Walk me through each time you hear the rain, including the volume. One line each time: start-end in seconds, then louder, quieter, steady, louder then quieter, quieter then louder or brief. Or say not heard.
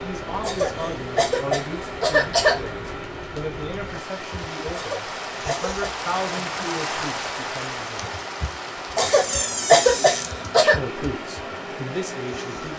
0.0-12.7 louder then quieter.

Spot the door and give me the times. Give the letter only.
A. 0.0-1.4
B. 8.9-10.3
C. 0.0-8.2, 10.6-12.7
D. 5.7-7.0
B.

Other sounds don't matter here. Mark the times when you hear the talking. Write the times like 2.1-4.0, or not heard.
0.0-8.2, 10.6-12.7.